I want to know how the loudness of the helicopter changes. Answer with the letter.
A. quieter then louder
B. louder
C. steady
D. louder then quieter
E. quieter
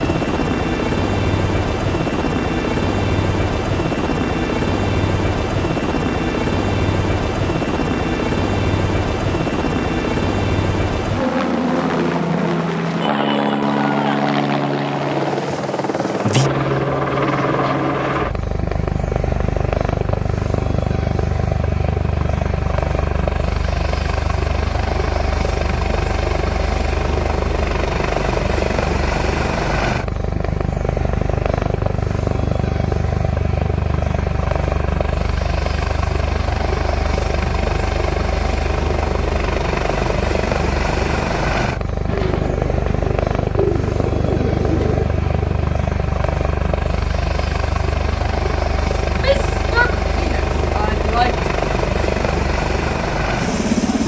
C.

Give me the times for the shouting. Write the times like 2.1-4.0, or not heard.
13.0-14.2, 49.1-51.5.